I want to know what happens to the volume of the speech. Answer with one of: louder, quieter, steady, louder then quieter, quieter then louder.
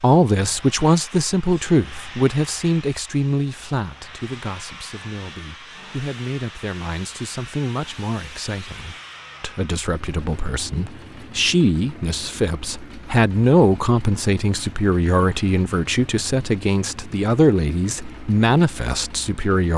quieter then louder.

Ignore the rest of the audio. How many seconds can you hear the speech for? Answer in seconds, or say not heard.
20 s.